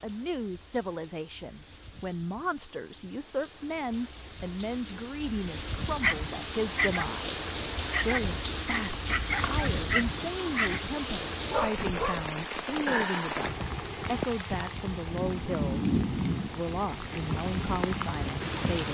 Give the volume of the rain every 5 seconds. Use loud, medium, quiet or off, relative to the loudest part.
quiet, loud, loud, loud.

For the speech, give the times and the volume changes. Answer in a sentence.
You can hear the speech from 0.0 to 18.8 s, at a steady volume.